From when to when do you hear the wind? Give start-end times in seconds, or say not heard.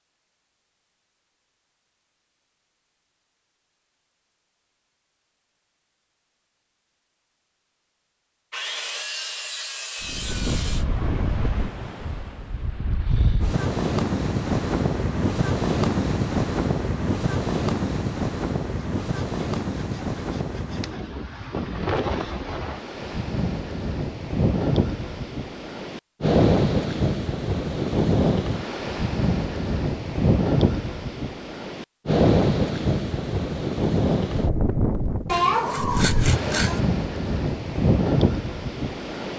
10.0-39.3.